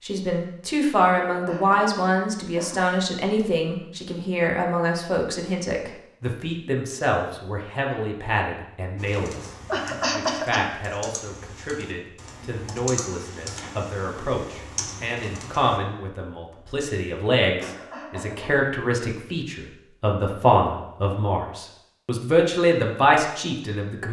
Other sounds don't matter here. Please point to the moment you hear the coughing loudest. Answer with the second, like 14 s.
10 s.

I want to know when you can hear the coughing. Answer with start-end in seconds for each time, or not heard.
1.1-2.9, 9.7-10.7, 17.6-18.6.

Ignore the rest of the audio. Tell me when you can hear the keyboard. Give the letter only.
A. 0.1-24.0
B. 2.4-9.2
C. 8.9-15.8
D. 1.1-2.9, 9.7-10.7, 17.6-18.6
C.